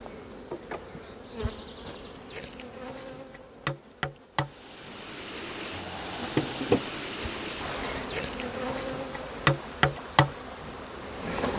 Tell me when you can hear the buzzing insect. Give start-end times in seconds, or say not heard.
0.0-11.5.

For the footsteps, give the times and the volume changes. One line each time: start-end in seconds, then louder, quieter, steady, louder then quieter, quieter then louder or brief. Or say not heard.
not heard.